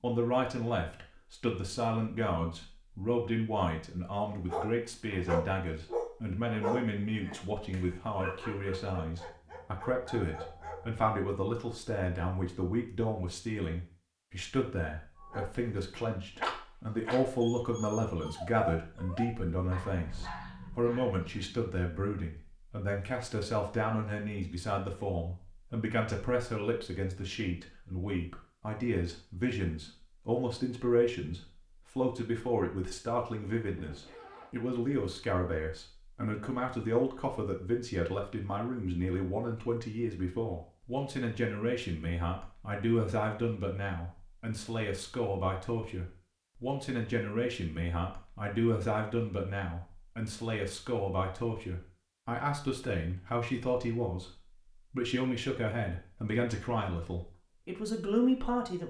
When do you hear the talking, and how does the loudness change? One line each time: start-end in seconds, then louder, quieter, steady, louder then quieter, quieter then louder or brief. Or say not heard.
0.0-58.8 steady.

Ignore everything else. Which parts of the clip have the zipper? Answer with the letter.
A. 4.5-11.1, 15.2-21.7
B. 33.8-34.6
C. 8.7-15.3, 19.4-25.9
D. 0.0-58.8
B.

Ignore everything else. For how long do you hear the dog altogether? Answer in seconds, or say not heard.
13 s.